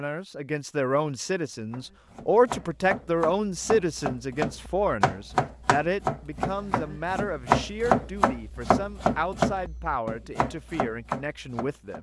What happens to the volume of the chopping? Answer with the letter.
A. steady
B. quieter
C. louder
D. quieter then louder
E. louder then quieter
E.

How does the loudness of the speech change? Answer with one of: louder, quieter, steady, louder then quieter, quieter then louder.
quieter.